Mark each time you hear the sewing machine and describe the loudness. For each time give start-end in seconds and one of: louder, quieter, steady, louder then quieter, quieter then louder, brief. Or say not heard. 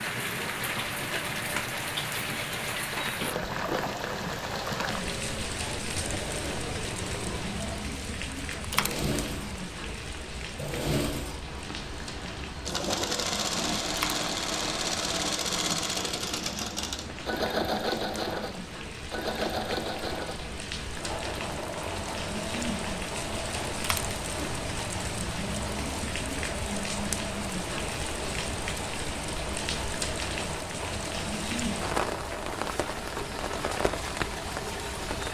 0.1-35.2 louder then quieter.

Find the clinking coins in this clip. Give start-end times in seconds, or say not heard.
8.5-9.1, 13.8-14.2, 23.8-24.2.